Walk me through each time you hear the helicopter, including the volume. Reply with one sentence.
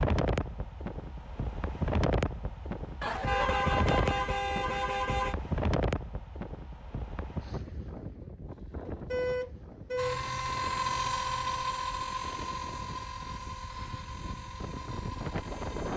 You can hear the helicopter from 9.9 to 15.9 s, getting quieter.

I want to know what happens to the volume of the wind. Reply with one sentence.
The volume of the wind goes down, then up.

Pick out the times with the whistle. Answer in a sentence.
The whistle can't be heard in this clip.